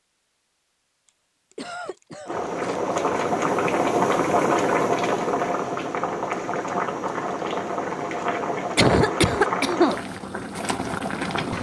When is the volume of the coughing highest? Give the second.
9 s.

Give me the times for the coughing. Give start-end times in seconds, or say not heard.
1.5-2.8, 8.8-9.9.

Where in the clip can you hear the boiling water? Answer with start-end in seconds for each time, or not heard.
2.2-11.5.